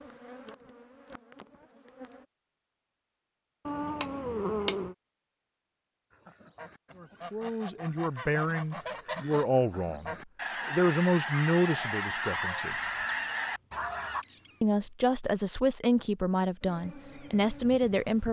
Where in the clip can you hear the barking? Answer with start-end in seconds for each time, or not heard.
not heard.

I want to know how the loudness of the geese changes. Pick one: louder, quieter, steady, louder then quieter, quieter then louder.
louder.